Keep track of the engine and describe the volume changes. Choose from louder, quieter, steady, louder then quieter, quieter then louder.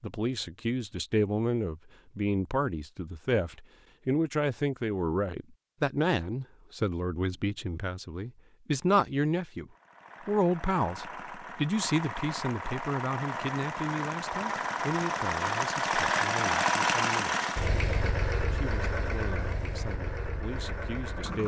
louder then quieter.